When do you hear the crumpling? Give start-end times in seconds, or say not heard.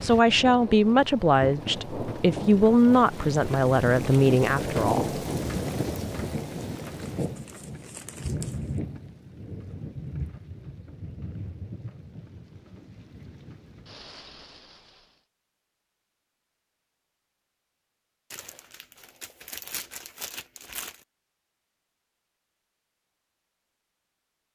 7.0-8.8, 18.3-21.1.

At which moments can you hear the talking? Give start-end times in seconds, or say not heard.
0.0-5.2.